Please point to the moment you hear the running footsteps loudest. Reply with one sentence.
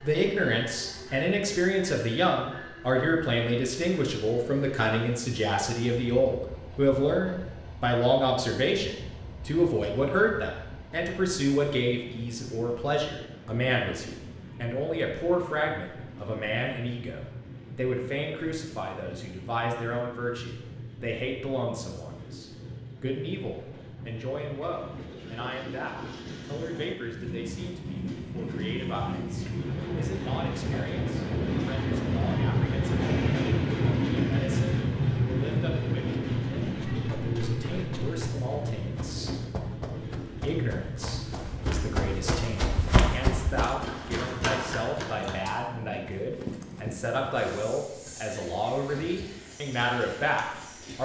The loudest moment of the running footsteps is at 43 seconds.